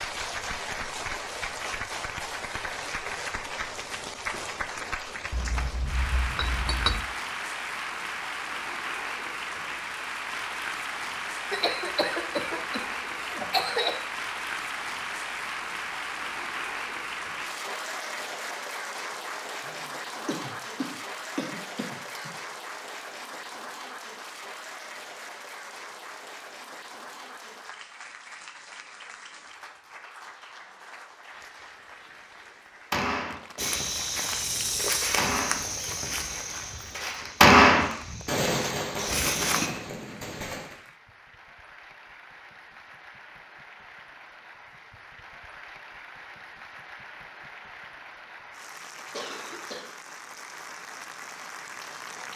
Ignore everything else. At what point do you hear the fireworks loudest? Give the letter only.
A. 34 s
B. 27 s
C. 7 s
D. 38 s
D.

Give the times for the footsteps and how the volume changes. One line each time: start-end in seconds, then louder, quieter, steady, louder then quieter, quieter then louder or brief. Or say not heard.
33.5-39.7 quieter then louder.